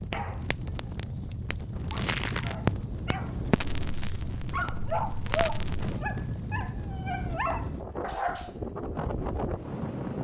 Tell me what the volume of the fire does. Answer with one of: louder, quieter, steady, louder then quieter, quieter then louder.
louder then quieter.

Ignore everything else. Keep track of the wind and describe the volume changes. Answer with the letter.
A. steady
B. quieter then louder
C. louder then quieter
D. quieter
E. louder
A.